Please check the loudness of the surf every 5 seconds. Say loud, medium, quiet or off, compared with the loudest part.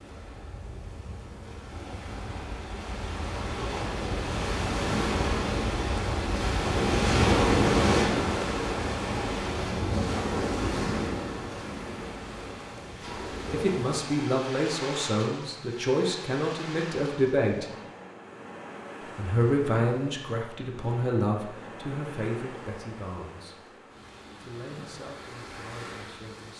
medium, loud, medium, quiet, quiet, quiet.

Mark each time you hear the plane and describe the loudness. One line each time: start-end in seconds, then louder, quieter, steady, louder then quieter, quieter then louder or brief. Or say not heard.
not heard.